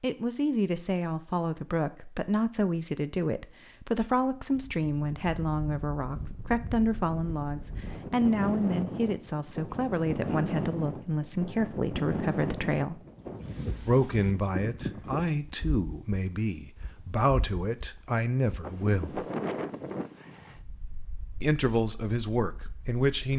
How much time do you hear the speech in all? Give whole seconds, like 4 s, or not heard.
20 s.